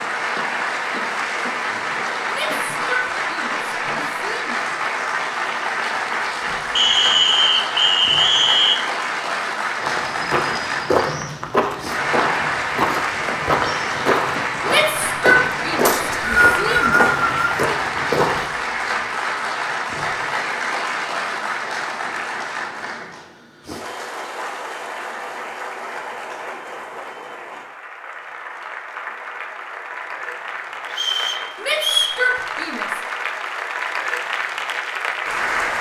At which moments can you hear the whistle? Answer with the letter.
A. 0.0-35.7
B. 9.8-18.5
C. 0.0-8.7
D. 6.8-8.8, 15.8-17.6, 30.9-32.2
D.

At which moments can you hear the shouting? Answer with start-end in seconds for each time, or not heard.
2.3-4.7, 14.7-17.0, 31.6-33.0.